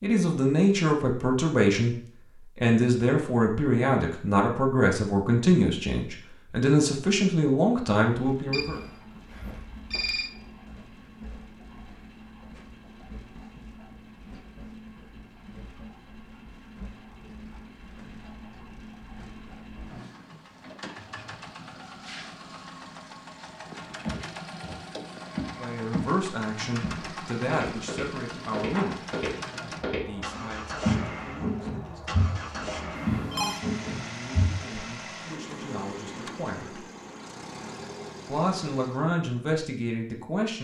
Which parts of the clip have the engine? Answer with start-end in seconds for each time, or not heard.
8.1-39.1.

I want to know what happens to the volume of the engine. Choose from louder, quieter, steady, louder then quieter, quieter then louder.
louder.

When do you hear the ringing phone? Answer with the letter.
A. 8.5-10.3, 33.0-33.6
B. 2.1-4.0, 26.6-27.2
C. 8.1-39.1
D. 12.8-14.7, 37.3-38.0
A.